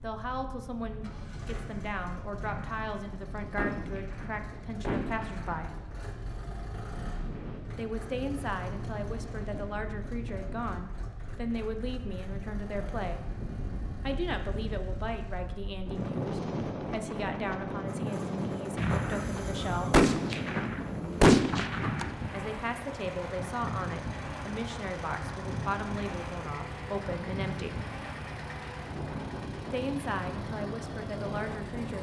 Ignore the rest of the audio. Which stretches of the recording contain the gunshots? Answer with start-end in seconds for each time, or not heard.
2.4-5.8, 18.8-22.1.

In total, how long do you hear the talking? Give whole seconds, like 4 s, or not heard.
25 s.